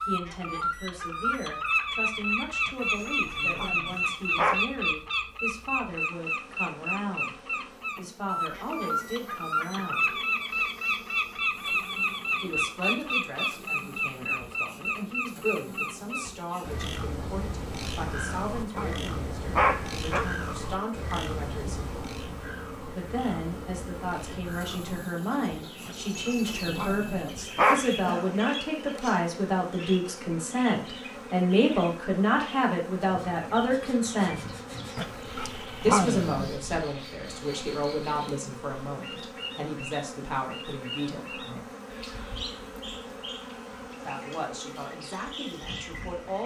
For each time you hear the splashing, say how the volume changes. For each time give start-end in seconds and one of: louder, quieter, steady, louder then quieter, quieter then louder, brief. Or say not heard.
not heard.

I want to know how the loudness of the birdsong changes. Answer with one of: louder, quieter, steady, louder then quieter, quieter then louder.
quieter.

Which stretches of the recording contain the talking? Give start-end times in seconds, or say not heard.
0.0-10.2, 12.4-21.9, 22.9-34.5, 35.8-41.6, 44.0-46.4.